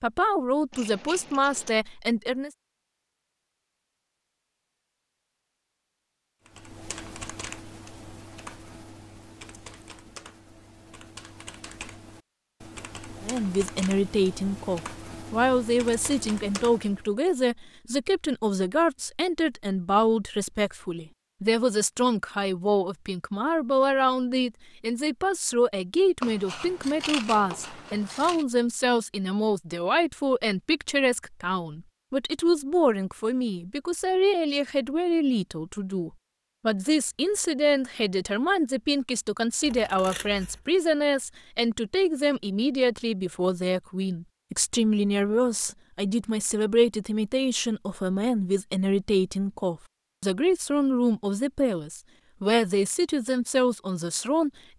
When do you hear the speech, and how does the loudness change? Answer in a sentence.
The speech can be heard briefly from 0.0 to 2.5 s; and from 13.2 to 54.5 s, at a steady volume.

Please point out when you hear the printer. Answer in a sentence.
The printer can't be heard in this clip.